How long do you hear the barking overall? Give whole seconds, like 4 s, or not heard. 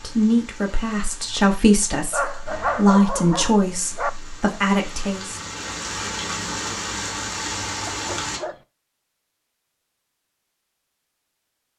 3 s.